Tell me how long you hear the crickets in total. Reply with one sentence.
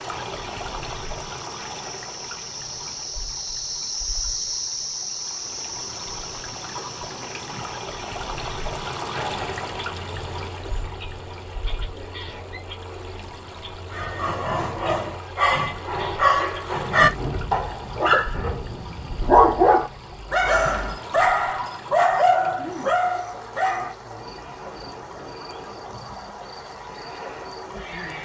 The crickets can be heard for 28 seconds in total.